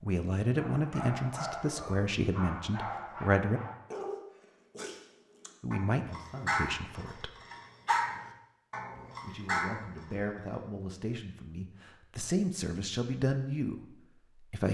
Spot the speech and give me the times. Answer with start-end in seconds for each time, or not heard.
0.0-3.6, 5.6-7.3, 9.2-14.6.